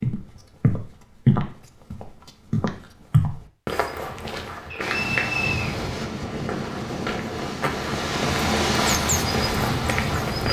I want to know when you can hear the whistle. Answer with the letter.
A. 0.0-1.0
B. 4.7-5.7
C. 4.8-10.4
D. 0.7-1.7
B.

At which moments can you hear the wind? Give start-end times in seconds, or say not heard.
4.8-10.4.